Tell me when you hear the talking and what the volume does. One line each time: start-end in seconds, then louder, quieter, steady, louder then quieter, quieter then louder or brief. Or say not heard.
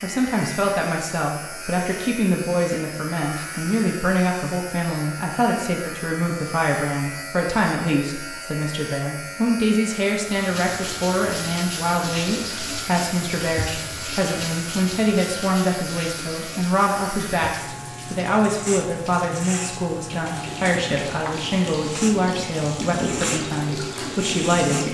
0.0-24.8 steady.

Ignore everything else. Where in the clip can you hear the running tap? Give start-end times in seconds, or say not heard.
10.3-24.8.